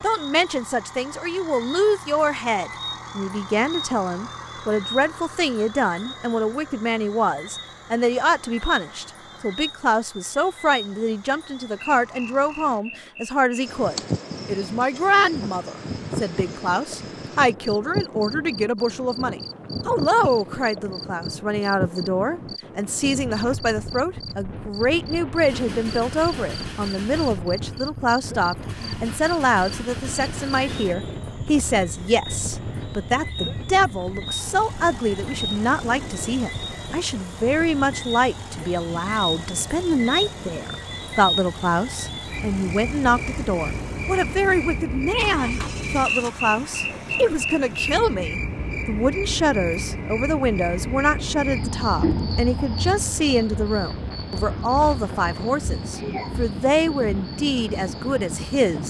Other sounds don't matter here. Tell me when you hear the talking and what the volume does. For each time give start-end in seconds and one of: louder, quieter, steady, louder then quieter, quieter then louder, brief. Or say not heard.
0.0-58.8 steady.